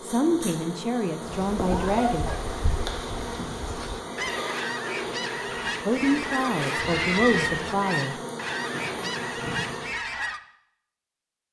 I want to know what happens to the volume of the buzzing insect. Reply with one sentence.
The volume of the buzzing insect stays about the same.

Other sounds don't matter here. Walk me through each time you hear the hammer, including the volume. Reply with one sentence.
You can't hear the hammer here.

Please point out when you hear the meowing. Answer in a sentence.
The meowing can be heard from 1.6 to 2.5 s and from 6.8 to 7.8 s.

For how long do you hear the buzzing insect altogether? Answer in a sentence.
The buzzing insect can be heard for 10 seconds in total.